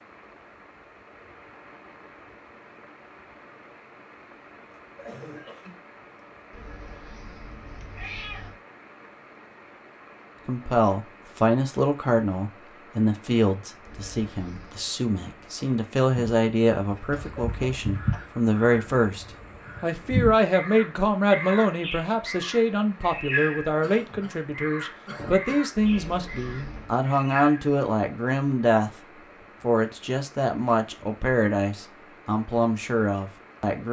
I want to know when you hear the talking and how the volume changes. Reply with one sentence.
You can hear the talking from 10.4 to 33.8 s, at a steady volume.